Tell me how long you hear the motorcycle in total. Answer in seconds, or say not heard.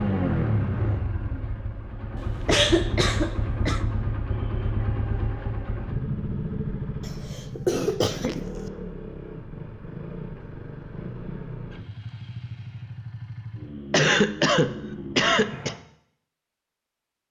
16 s.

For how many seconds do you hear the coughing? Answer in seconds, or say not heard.
5 s.